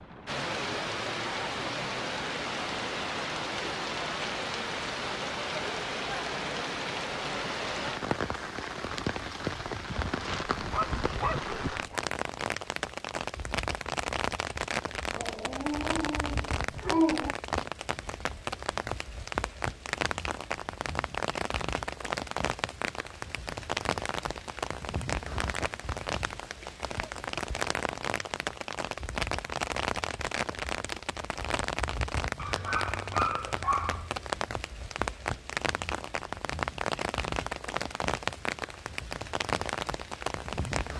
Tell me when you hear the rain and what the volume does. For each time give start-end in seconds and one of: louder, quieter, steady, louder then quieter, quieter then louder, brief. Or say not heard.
0.0-40.9 steady.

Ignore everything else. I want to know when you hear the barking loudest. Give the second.
17 s.